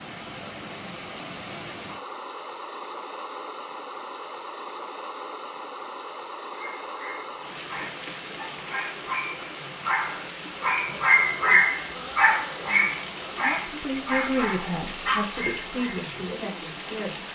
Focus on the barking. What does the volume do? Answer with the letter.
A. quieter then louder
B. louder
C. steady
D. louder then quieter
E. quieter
D.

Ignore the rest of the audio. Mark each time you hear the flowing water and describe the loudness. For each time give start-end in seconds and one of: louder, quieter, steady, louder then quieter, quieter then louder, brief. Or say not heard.
0.0-17.3 steady.